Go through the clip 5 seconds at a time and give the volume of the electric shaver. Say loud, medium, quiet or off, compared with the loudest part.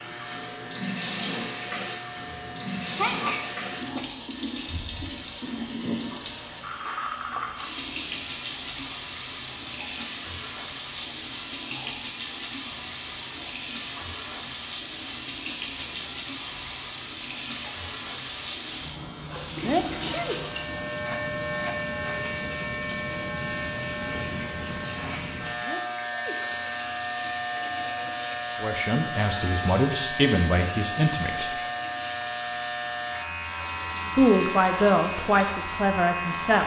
medium, quiet, quiet, quiet, loud, loud, loud, loud.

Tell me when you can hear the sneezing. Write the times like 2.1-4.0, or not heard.
2.3-4.0, 19.6-20.4, 25.6-26.5.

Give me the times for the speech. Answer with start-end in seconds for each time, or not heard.
28.6-31.6, 34.1-36.6.